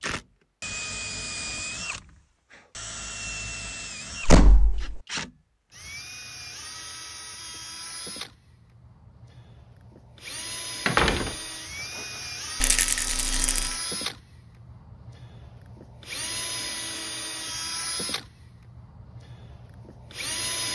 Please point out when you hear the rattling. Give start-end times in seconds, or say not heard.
12.6-13.8.